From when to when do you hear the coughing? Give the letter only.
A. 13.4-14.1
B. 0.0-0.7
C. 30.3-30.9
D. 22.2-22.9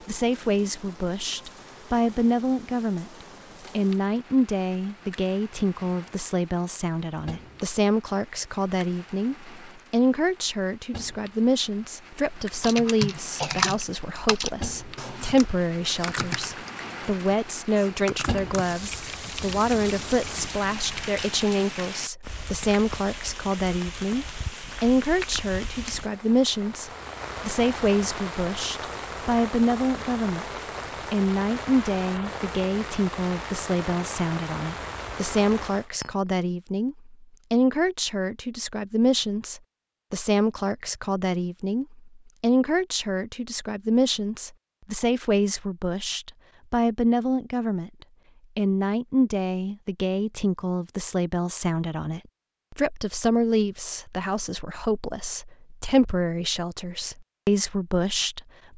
A.